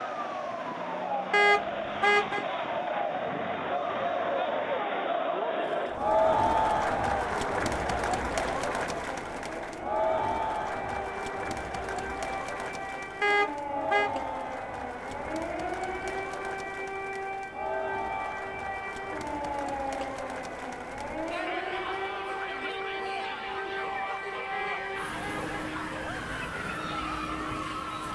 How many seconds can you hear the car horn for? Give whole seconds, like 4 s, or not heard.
3 s.